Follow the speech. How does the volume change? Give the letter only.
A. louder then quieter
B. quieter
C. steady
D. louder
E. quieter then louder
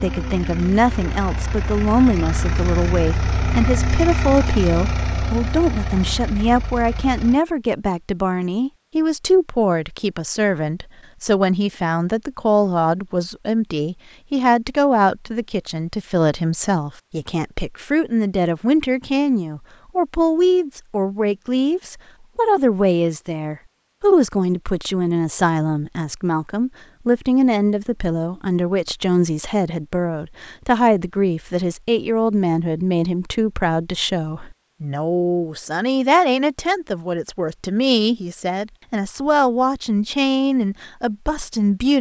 C.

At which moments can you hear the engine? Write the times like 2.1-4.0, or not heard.
0.0-7.4.